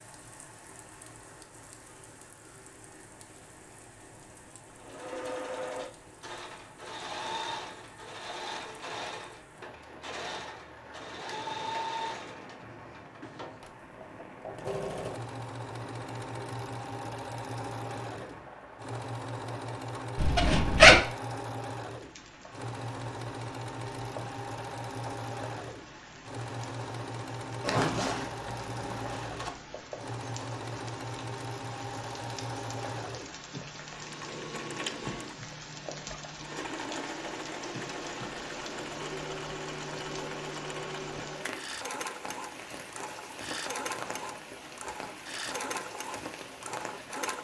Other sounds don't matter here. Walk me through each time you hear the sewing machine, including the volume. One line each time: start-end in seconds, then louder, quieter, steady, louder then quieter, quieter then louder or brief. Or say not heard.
4.8-47.3 steady.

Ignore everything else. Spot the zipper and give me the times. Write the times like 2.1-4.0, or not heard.
20.1-21.0, 27.6-29.5.